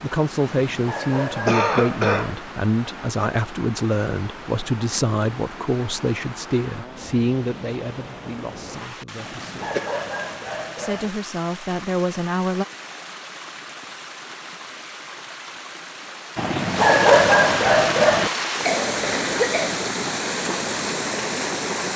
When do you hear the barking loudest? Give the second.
17 s.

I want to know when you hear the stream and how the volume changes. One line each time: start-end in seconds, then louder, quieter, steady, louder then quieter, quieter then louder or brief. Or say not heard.
0.0-21.9 louder.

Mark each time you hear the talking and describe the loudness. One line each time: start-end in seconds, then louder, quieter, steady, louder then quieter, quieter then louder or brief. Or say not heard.
0.0-9.8 quieter
10.8-12.7 brief.